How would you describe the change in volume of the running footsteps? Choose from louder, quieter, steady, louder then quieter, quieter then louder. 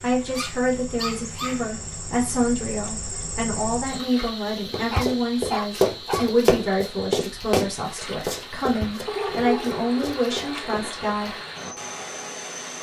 quieter.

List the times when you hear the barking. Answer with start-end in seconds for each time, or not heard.
0.3-1.6, 4.9-6.3, 9.1-10.8.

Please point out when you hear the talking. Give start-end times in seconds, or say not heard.
0.0-11.3.